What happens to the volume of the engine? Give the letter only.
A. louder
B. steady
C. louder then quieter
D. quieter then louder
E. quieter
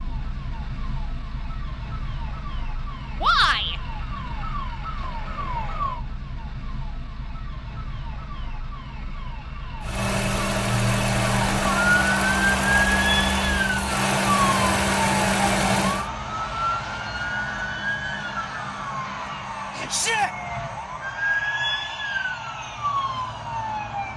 B.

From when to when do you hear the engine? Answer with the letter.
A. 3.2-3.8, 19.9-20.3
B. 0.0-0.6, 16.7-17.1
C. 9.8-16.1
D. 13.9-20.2
C.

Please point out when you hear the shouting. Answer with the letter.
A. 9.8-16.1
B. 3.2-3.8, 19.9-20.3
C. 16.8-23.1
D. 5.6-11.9
B.